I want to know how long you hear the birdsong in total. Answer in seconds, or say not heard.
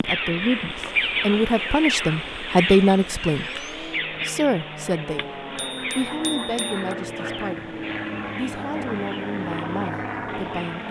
11 s.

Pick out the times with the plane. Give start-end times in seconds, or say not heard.
0.0-10.8.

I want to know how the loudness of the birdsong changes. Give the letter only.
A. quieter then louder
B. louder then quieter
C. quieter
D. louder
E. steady
C.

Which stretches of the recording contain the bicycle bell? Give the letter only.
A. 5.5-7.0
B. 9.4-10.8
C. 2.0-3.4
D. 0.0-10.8
A.